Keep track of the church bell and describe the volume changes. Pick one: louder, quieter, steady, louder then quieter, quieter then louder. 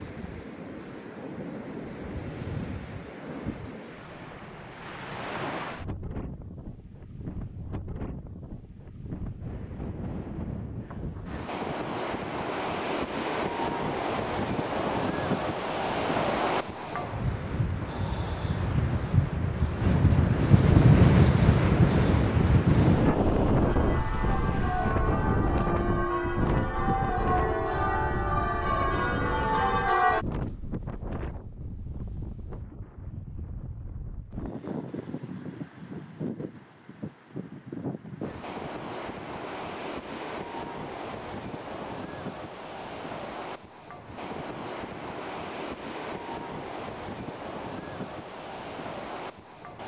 louder.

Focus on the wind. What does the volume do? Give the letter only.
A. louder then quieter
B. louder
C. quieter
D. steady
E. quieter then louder
A.